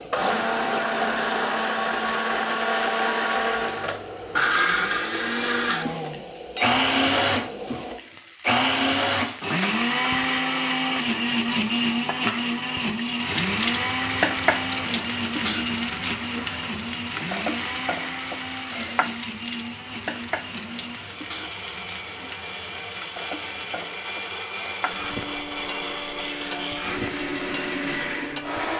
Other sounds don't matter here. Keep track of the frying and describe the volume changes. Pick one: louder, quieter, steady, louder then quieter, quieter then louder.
louder then quieter.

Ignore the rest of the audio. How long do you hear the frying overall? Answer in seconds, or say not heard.
29 s.